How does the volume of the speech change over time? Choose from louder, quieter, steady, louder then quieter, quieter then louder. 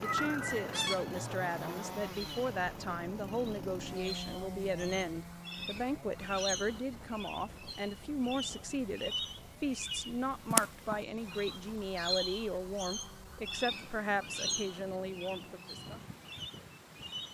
steady.